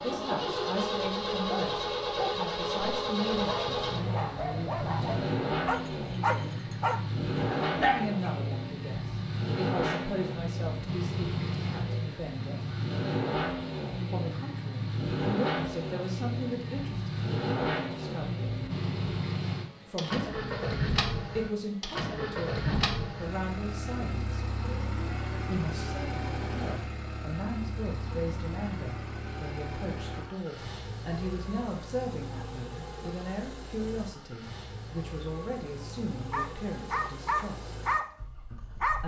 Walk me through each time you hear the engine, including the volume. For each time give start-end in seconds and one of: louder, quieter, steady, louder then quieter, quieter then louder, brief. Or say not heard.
0.0-39.0 quieter.